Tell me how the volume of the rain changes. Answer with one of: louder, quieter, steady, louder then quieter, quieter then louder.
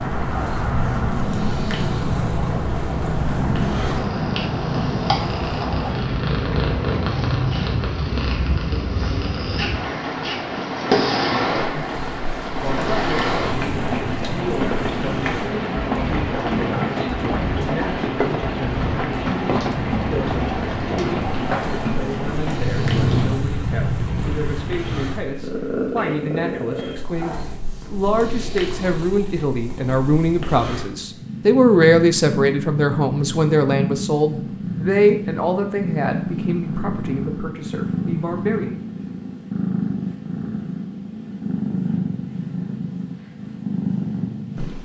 steady.